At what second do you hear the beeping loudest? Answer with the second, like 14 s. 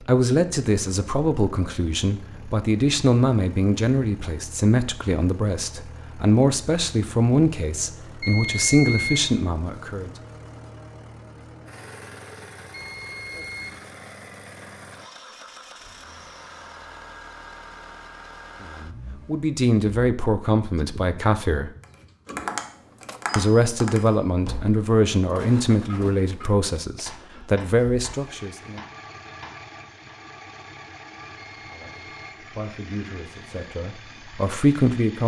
9 s.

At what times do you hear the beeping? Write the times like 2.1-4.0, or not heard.
8.2-9.3, 12.7-13.8, 31.4-32.5.